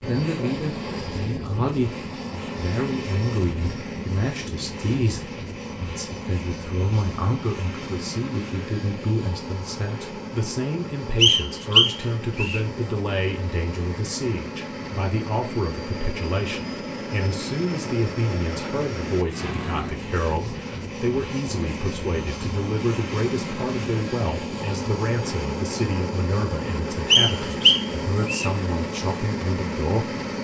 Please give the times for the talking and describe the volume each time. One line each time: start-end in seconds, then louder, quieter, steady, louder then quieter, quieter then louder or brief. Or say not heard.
0.1-30.4 steady.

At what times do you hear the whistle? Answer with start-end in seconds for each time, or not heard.
11.2-12.6, 27.1-28.5.